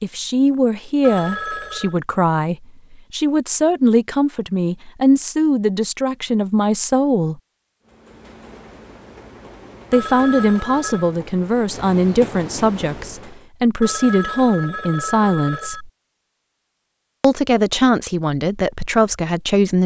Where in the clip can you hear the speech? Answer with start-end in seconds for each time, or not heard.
0.0-7.4, 9.9-15.9, 17.2-19.8.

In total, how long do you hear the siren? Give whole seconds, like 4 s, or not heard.
not heard.